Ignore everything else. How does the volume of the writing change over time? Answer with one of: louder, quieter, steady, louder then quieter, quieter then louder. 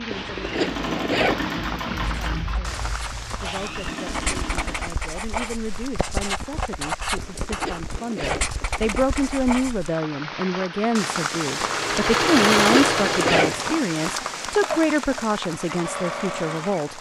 louder.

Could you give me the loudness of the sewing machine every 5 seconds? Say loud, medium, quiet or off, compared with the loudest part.
medium, off, loud, medium.